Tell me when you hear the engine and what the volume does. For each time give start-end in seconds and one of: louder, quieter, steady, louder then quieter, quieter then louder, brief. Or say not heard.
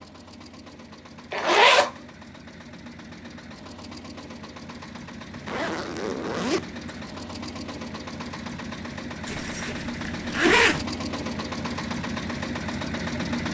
0.0-13.4 louder.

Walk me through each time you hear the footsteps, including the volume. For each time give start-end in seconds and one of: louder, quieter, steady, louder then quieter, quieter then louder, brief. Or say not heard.
not heard.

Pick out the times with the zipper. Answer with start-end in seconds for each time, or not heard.
1.3-1.9, 5.3-7.0, 9.2-10.8.